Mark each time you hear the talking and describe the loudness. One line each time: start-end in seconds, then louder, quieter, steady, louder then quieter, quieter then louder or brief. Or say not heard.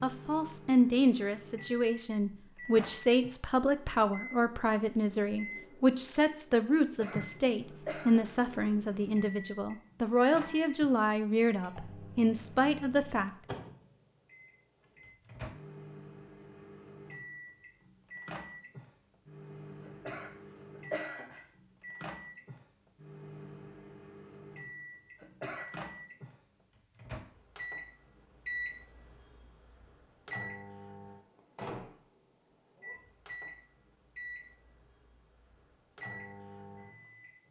0.0-13.3 steady.